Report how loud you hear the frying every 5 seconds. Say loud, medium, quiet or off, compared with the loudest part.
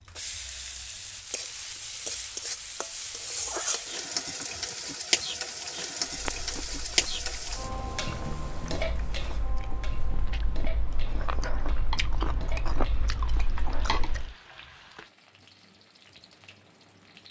loud, loud, quiet, quiet.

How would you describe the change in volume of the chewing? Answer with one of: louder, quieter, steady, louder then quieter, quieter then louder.
louder.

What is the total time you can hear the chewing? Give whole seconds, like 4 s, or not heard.
8 s.